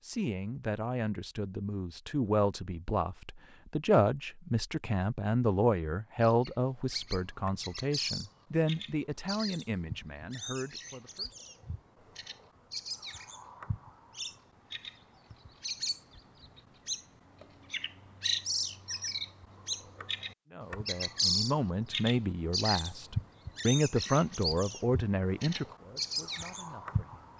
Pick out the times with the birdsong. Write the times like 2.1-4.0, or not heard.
6.2-27.3.